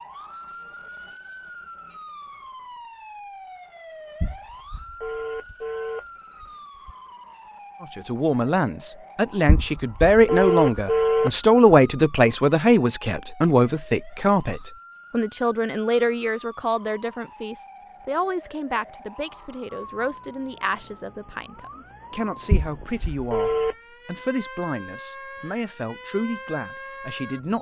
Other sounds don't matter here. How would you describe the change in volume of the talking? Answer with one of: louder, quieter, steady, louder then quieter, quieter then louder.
quieter.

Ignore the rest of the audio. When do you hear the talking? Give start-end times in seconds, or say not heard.
7.8-27.5.